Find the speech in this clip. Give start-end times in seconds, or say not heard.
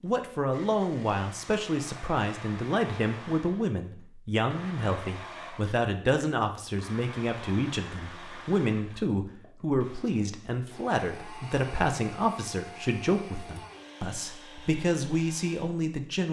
0.0-16.2.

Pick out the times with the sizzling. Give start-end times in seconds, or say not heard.
not heard.